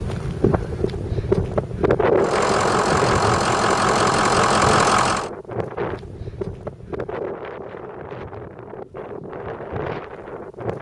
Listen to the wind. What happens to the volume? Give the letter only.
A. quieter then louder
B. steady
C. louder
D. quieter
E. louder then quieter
D.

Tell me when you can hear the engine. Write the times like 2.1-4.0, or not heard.
2.1-5.3.